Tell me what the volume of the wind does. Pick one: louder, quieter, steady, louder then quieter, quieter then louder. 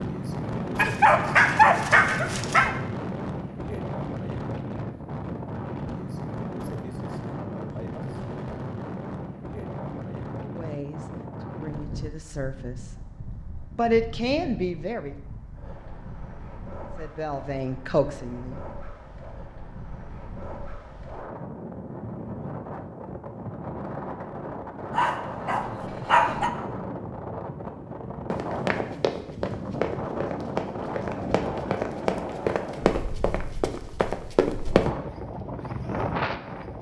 quieter then louder.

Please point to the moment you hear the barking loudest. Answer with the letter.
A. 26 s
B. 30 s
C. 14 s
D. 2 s
D.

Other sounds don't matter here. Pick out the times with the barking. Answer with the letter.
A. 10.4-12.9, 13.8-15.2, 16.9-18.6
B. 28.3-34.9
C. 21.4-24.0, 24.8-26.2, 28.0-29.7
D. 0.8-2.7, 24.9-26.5
D.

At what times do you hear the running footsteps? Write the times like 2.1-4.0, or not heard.
28.3-34.9.